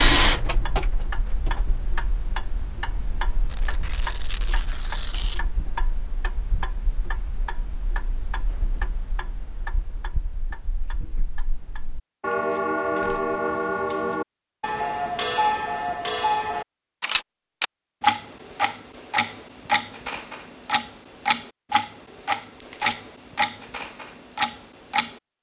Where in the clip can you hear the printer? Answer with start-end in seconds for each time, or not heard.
0.0-1.8.